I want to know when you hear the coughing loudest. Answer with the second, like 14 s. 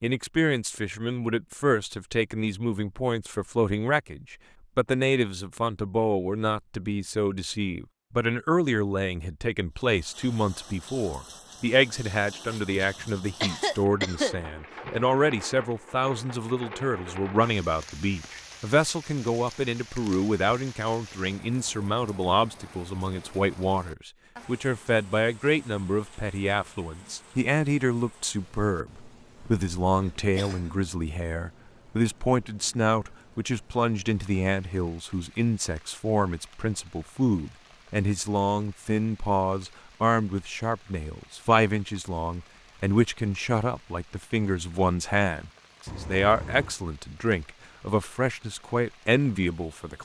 14 s.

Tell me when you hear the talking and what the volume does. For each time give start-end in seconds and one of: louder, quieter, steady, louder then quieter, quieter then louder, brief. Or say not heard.
0.0-50.0 steady.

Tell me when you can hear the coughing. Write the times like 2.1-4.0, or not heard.
12.8-15.1, 29.4-30.9, 45.9-46.8.